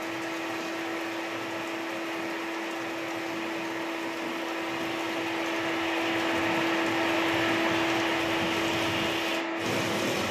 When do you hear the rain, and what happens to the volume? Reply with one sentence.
The rain can be heard from 0.0 to 10.2 s, getting louder.